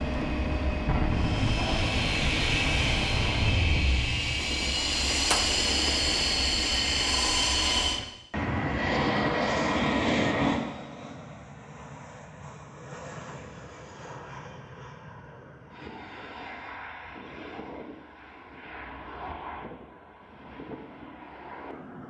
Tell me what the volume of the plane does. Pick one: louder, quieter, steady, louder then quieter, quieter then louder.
quieter.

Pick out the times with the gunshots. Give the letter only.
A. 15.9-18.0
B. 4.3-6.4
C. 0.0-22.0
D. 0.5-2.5
B.